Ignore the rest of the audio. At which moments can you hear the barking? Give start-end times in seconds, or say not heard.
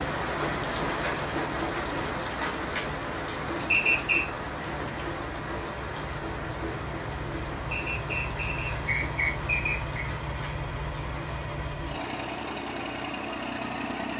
not heard.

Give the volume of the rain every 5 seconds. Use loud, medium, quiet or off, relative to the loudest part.
loud, medium, medium.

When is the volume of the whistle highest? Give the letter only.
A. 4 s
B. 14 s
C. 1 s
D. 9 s
A.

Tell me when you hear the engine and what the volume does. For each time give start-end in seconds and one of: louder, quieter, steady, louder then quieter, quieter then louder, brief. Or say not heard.
0.0-14.1 louder.